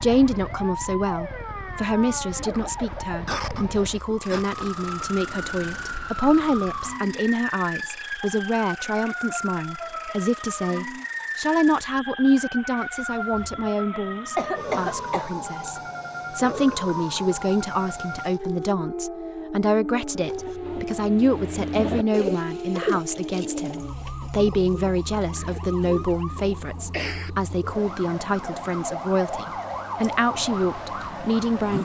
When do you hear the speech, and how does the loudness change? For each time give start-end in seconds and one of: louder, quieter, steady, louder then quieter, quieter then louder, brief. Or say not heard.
0.0-31.8 steady.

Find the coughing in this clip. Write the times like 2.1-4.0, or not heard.
3.2-4.5, 14.3-15.3, 25.4-27.3.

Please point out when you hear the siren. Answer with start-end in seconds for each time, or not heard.
0.0-31.8.